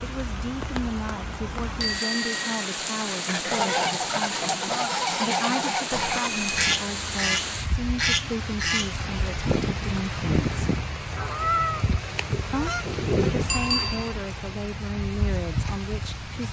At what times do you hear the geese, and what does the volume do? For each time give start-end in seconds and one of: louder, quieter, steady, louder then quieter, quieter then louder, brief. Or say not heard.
3.2-13.6 steady.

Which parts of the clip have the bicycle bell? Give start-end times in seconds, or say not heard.
1.8-2.5, 5.9-6.7, 13.4-14.2.